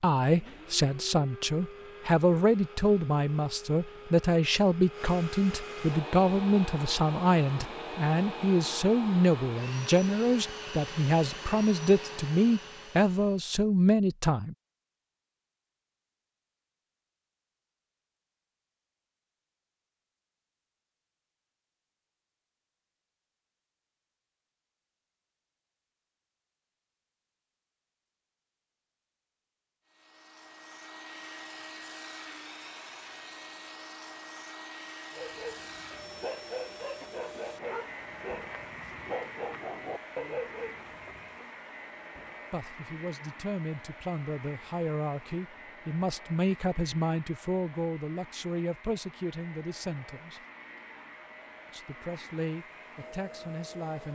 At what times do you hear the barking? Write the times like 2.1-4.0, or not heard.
35.1-41.5.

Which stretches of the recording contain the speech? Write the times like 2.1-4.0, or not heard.
0.0-14.6, 42.5-50.4, 51.7-54.1.